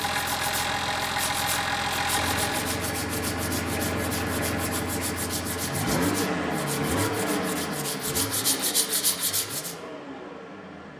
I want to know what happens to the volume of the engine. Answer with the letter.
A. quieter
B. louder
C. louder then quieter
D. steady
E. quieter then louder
A.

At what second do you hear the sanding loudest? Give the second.
9 s.